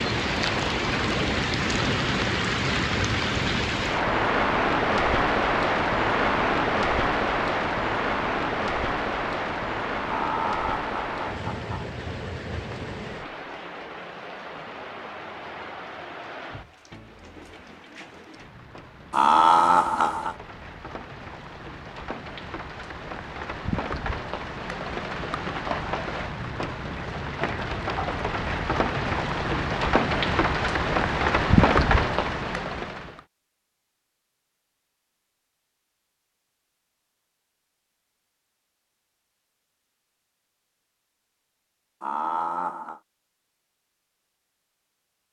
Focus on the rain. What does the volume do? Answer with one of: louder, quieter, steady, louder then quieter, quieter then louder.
quieter then louder.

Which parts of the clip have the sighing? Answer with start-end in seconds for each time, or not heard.
not heard.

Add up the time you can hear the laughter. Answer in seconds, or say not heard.
4 s.